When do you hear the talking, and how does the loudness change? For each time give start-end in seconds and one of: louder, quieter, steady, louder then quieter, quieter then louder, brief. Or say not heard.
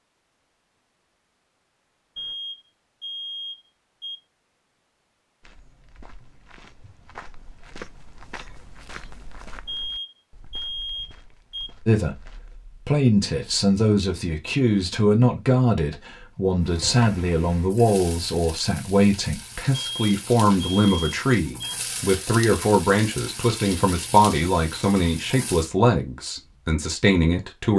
11.8-27.7 steady.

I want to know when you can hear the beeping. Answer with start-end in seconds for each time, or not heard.
2.1-4.2, 9.7-11.7, 19.7-21.8.